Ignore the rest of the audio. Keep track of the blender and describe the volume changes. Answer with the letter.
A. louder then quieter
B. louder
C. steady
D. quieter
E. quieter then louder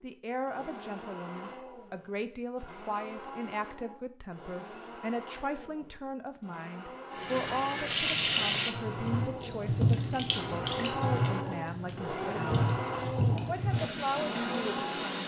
B.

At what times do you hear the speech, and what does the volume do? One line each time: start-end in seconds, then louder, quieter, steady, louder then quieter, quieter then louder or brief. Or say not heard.
0.0-12.7 steady
13.4-15.2 brief.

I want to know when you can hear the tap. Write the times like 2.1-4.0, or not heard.
7.1-15.2.